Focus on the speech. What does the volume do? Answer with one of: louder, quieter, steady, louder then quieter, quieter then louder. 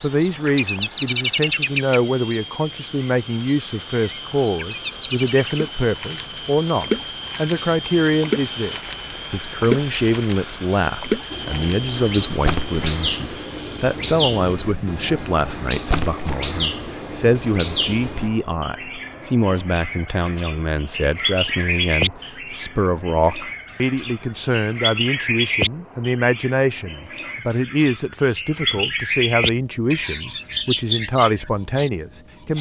steady.